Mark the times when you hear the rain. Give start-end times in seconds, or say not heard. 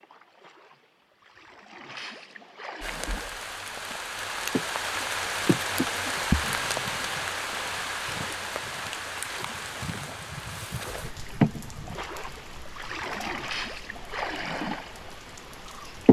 2.8-16.0.